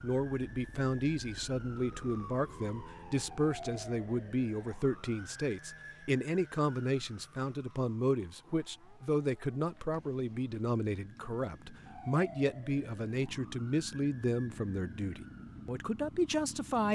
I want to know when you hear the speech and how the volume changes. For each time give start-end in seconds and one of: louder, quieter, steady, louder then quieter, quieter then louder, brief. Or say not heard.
0.0-16.8 steady.